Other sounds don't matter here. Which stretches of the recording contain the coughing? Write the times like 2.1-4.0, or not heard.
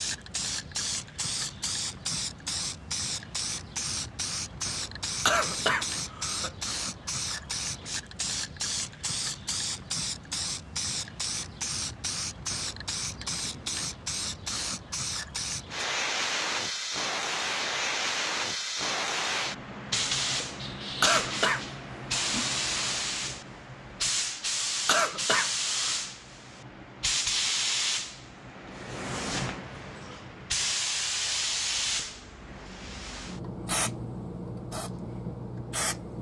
5.2-6.5, 21.0-21.6, 24.9-25.9.